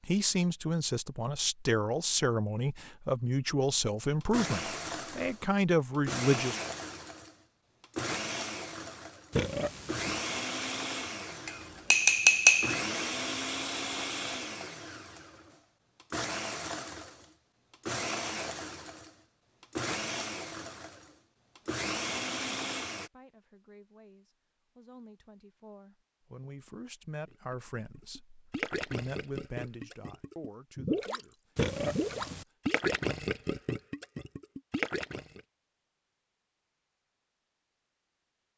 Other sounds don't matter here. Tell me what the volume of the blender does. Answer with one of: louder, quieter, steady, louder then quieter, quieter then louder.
steady.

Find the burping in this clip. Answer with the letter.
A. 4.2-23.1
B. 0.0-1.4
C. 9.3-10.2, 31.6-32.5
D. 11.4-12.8
C.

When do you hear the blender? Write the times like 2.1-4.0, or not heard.
4.2-23.1.